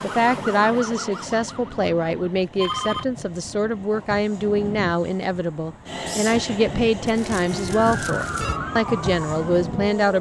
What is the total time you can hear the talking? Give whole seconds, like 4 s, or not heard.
10 s.